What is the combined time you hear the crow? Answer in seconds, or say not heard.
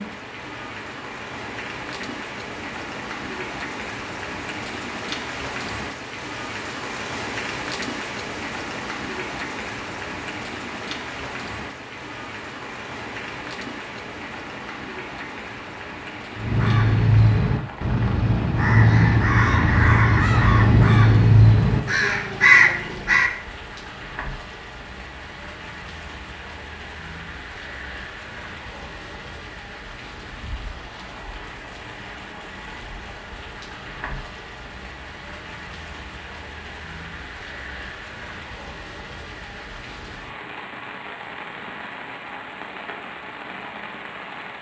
7 s.